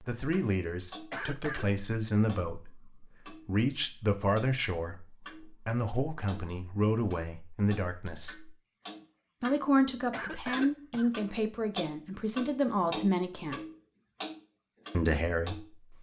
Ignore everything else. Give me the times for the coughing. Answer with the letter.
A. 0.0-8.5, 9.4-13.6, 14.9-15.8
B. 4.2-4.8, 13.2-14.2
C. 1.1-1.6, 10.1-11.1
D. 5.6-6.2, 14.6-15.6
C.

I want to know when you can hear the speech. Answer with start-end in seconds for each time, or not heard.
0.0-8.5, 9.4-13.6, 14.9-15.8.